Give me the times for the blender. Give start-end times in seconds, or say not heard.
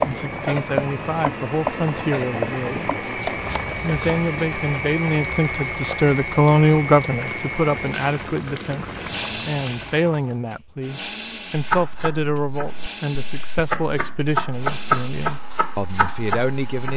0.0-16.9.